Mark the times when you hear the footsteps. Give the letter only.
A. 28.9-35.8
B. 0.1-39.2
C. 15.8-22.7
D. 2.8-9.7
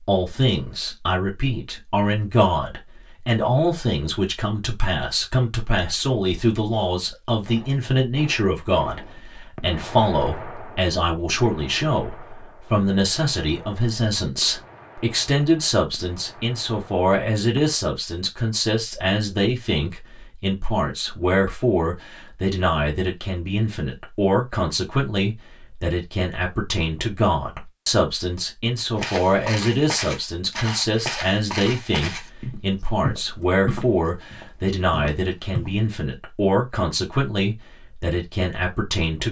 A.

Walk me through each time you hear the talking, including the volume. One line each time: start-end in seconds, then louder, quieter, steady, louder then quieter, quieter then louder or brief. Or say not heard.
0.1-39.2 steady.